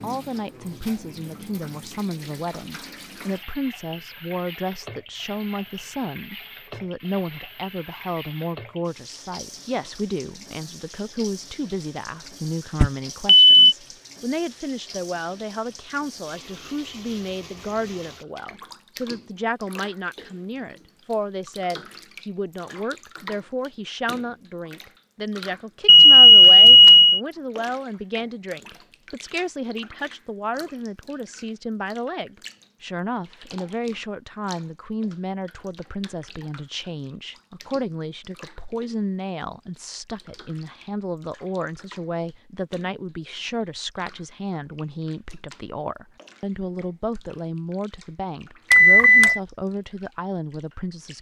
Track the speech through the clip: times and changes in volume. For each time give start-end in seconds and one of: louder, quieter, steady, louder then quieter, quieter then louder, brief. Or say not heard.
0.0-51.1 steady.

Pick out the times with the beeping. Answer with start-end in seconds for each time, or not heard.
12.8-13.5, 25.9-27.2, 48.7-49.4.